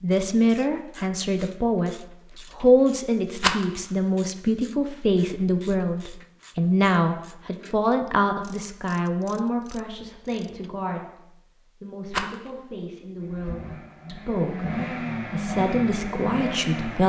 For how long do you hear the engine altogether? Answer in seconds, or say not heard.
4 s.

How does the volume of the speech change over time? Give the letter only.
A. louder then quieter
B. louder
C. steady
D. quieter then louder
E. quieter
D.